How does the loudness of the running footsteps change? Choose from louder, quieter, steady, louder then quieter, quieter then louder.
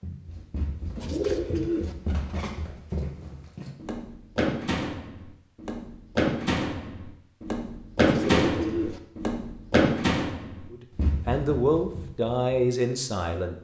louder.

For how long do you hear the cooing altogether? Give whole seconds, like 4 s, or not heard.
2 s.